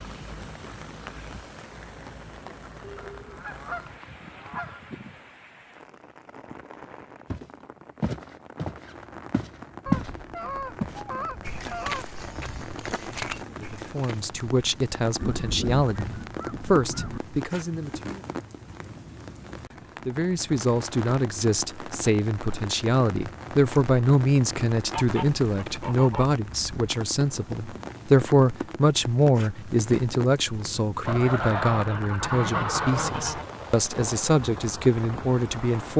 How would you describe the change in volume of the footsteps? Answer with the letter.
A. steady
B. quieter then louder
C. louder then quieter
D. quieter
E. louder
C.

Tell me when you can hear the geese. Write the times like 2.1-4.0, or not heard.
3.0-5.2, 9.8-12.7, 15.2-17.2, 24.9-26.9, 31.1-33.5.